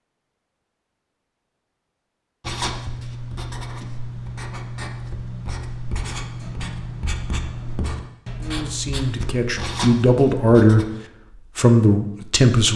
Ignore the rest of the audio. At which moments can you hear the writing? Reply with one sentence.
The writing can be heard from 2.4 to 10.9 s.